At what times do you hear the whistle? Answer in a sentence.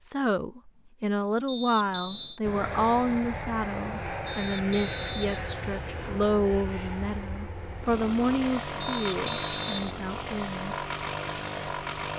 The whistle can be heard from 1.4 to 2.4 s, from 4.2 to 6.2 s and from 8.8 to 9.9 s.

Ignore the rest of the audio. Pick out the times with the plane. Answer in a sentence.
You can hear the plane from 2.4 to 12.1 s.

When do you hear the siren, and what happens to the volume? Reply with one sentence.
You can't hear the siren here.